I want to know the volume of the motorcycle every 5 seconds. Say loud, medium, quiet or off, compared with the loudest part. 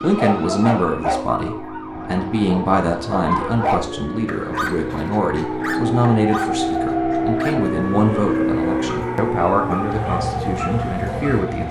medium, loud, medium.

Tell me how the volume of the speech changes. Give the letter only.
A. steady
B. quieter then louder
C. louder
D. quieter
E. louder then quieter
A.